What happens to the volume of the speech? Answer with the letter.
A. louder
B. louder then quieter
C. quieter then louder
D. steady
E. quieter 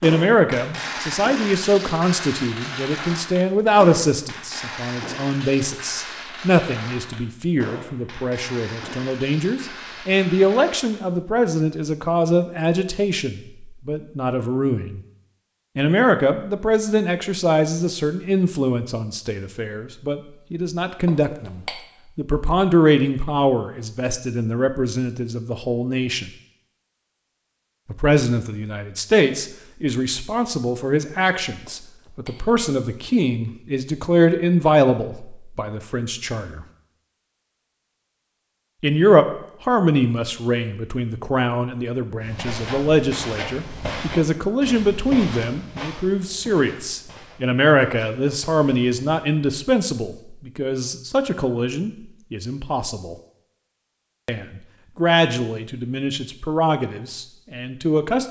D.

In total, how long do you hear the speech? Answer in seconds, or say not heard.
53 s.